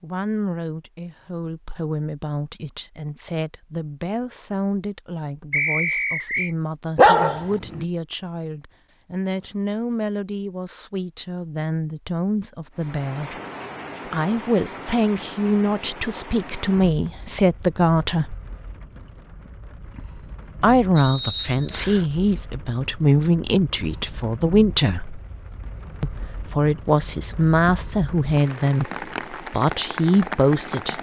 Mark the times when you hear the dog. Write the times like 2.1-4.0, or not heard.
7.0-7.8.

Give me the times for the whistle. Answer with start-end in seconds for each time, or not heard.
5.5-6.5, 20.9-22.1.